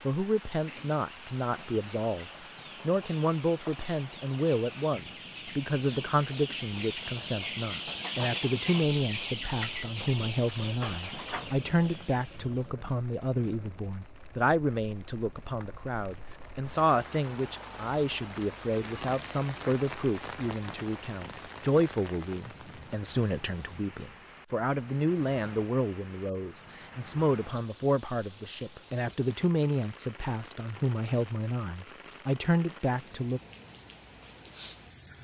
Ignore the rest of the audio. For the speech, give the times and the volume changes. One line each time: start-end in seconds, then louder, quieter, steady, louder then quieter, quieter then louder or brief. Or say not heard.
0.0-33.4 steady.